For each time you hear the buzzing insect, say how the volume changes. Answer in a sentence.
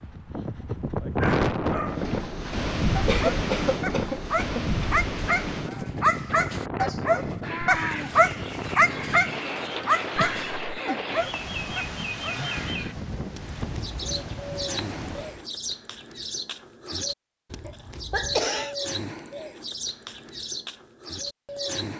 You can't hear the buzzing insect here.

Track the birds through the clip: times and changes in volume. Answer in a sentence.
You can hear the birds from 6.8 to 21.9 s, at a steady volume.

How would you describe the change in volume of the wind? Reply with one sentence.
The volume of the wind goes down.